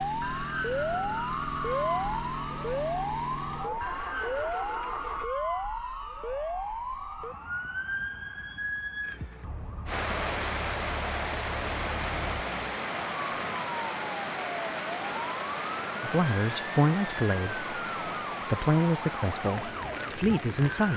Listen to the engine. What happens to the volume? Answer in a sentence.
The volume of the engine stays about the same.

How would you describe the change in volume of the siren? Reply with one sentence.
The loudness of the siren goes down.